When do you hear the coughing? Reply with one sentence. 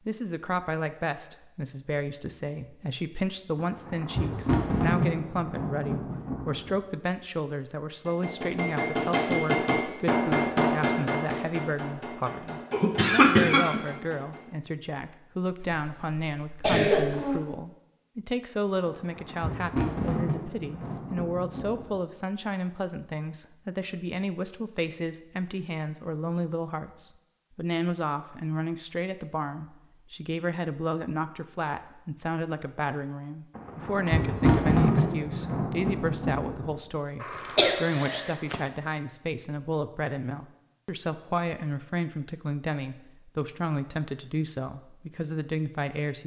The coughing can be heard from 12.7 to 13.8 s, from 15.6 to 17.4 s and from 37.2 to 38.5 s.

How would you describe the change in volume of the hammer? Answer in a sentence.
The volume of the hammer goes down.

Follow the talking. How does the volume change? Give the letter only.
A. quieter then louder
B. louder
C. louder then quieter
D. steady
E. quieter
D.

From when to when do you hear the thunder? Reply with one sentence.
The thunder can be heard from 3.5 to 6.8 s, from 18.9 to 22.0 s and from 33.5 to 36.8 s.